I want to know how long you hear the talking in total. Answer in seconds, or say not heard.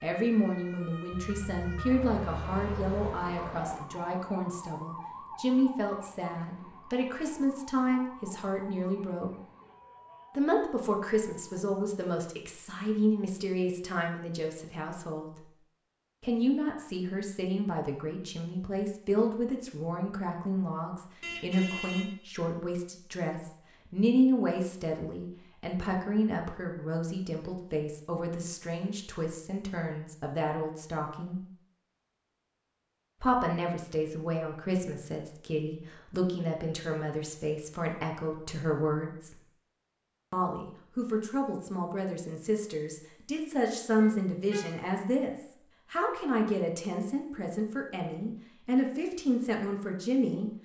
46 s.